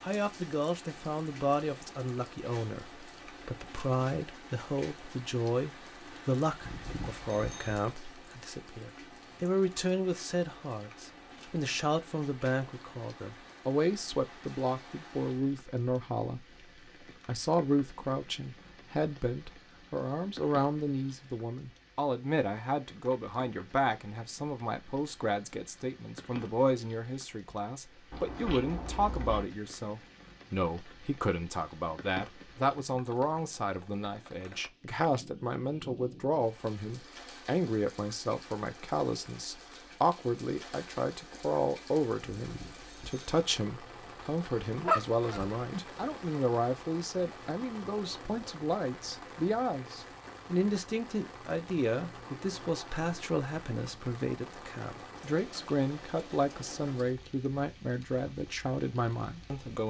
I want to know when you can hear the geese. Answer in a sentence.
The geese can be heard from 44.5 to 45.8 s.